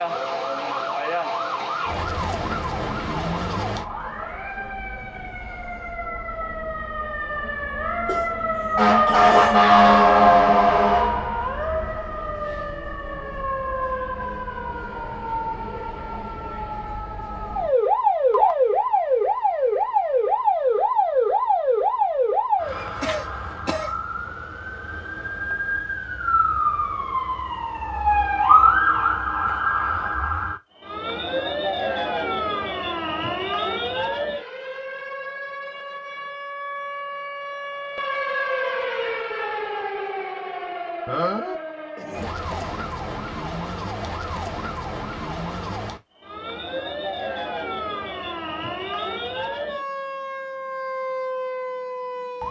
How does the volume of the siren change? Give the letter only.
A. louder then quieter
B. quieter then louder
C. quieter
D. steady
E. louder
C.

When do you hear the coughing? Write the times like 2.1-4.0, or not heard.
8.1-9.6, 23.0-23.9, 41.0-42.8.